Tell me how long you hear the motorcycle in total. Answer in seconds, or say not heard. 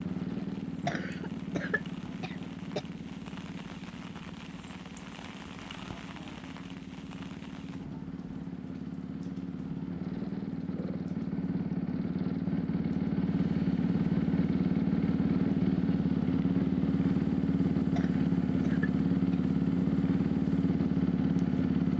22 s.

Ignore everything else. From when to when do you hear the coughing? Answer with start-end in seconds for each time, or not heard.
0.8-2.9, 17.9-19.4.